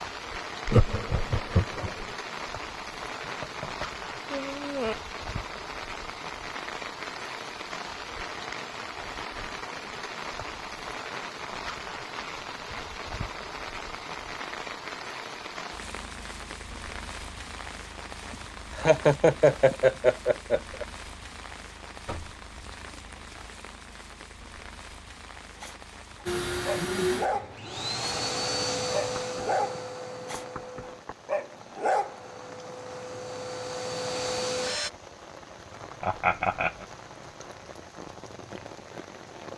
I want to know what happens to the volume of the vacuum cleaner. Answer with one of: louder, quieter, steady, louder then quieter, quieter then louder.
quieter then louder.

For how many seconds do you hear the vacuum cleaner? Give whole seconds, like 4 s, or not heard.
9 s.